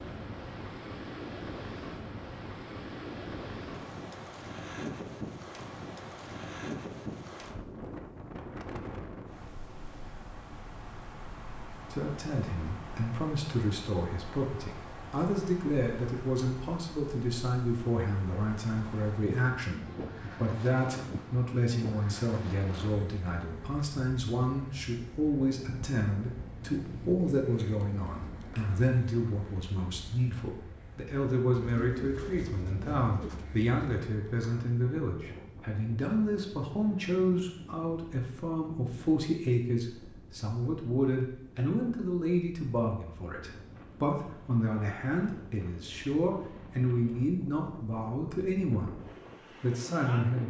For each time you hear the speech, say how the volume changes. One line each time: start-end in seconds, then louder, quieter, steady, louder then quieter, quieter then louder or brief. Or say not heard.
11.9-49.0 steady
49.6-50.4 brief.